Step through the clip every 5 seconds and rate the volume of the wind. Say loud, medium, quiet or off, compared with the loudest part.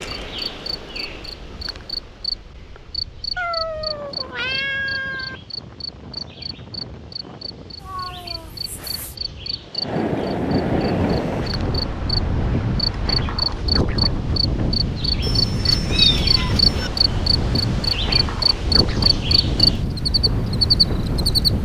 quiet, quiet, loud, loud, loud.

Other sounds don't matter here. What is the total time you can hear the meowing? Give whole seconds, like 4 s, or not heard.
5 s.